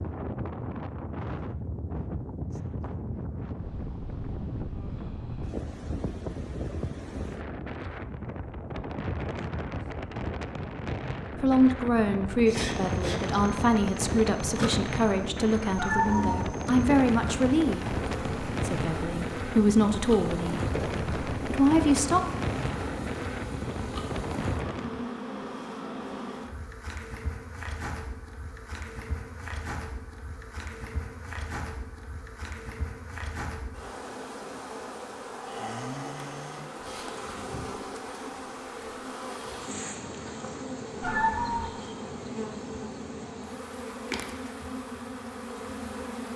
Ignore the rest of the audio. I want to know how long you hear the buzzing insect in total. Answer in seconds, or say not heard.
34 s.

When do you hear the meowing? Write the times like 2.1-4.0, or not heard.
15.8-16.4, 41.0-41.7.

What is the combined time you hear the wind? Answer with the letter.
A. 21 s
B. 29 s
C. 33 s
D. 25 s
D.